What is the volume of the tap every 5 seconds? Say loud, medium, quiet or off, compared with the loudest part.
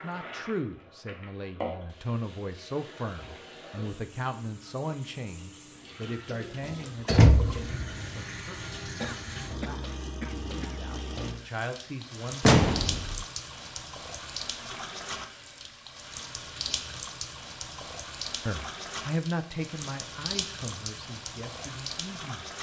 medium, loud, loud, loud, loud.